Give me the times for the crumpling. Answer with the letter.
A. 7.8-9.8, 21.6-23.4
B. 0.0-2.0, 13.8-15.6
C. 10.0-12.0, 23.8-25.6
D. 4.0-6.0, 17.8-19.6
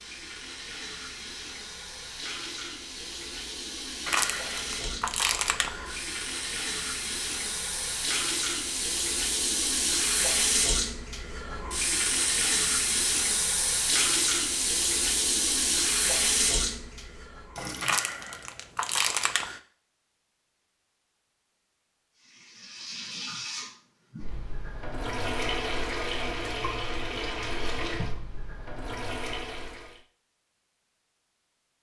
D.